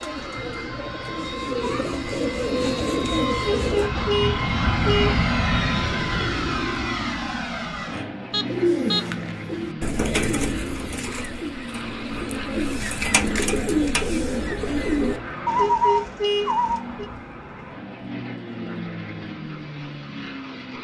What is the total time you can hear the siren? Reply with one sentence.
You can't hear the siren here.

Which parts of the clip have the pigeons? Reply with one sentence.
The pigeons can be heard from 0.0 to 3.9 s and from 8.4 to 16.8 s.